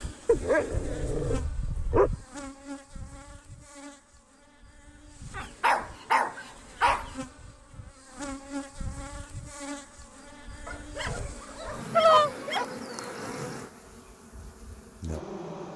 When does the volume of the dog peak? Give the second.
12 s.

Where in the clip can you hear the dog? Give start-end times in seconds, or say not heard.
0.2-2.2, 5.3-7.1, 10.7-12.7.